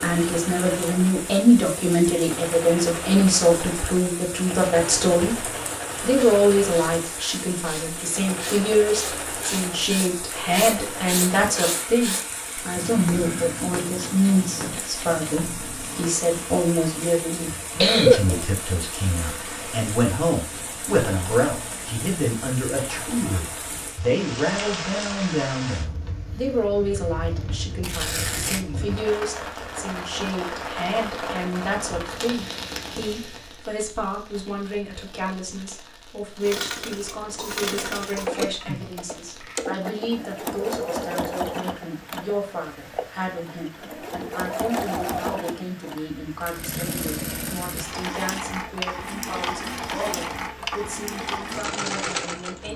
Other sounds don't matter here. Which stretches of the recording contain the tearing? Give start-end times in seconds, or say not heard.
27.8-28.6.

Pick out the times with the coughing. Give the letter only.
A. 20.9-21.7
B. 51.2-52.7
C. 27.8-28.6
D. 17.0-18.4
D.